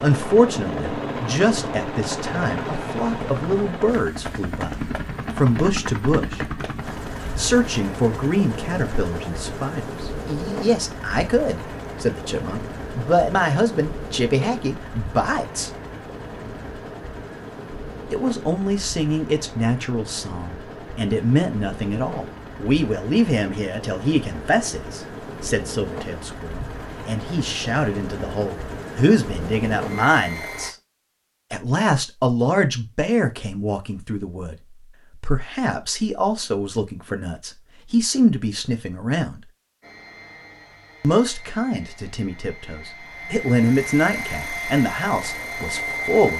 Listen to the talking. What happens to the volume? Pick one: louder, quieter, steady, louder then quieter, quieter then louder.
steady.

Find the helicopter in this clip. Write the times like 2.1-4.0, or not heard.
0.0-30.8, 39.8-46.3.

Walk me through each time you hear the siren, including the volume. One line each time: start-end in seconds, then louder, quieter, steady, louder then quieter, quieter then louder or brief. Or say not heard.
not heard.